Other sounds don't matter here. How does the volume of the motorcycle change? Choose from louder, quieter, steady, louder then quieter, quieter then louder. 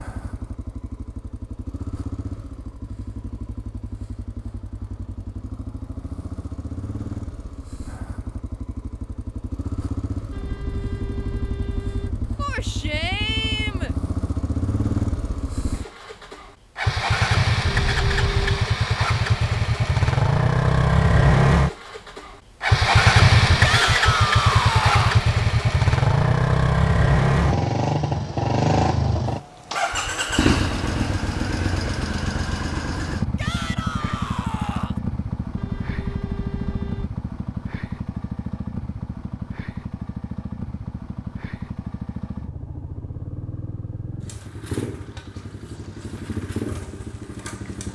louder then quieter.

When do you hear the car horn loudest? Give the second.
18 s.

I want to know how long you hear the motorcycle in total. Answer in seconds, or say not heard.
48 s.